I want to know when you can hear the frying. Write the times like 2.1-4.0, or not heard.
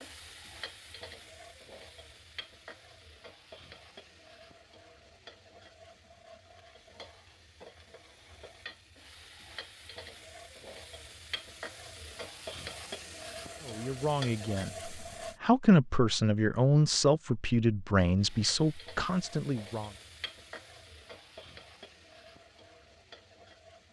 0.0-15.4, 18.1-23.8.